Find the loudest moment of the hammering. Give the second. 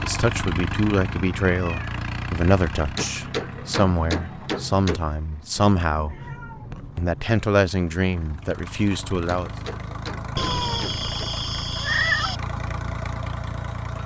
4 s.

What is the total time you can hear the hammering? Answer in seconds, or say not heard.
4 s.